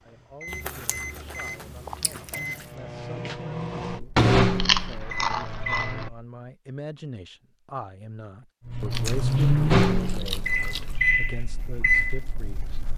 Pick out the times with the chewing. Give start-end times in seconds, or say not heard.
0.5-2.6, 4.5-6.1, 8.9-11.0.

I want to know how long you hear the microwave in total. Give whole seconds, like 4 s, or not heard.
10 s.